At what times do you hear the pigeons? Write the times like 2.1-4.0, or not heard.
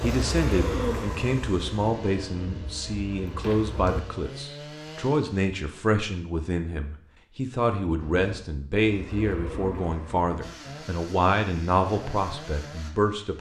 0.0-4.0, 8.0-10.3.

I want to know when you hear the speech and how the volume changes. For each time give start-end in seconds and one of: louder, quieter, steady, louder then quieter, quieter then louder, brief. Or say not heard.
0.0-13.3 steady.